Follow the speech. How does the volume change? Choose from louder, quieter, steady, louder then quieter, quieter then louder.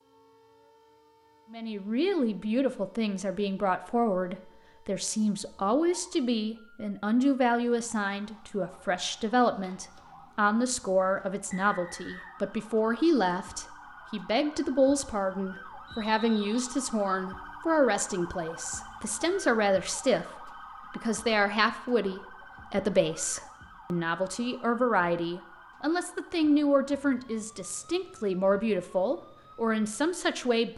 steady.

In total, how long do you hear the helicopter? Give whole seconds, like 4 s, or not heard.
not heard.